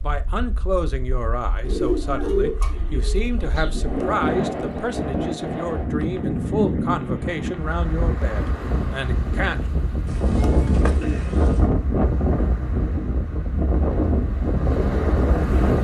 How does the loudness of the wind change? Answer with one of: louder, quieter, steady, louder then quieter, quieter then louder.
louder.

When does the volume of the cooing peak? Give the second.
2 s.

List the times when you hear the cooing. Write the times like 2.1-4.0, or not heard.
1.6-4.2, 10.1-11.7.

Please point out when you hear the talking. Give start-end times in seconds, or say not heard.
0.0-9.6.